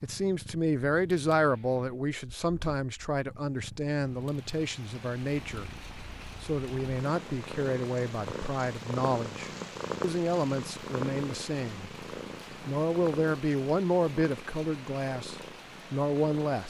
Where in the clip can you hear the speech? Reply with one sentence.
You can hear the speech from 0.0 to 5.7 s, from 6.4 to 11.9 s and from 12.7 to 16.6 s.